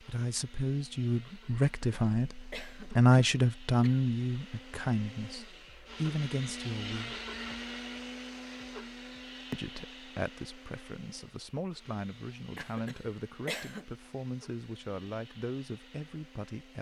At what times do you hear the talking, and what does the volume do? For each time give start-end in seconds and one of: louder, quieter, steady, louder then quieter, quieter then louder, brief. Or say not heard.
0.0-7.2 louder then quieter
9.5-16.7 steady.